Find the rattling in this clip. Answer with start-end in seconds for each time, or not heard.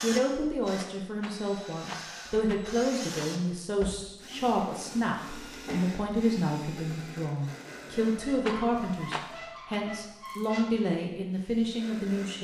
1.2-3.4, 8.4-9.8.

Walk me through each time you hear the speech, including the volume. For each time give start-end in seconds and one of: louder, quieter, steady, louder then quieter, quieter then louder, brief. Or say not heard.
0.0-12.3 steady.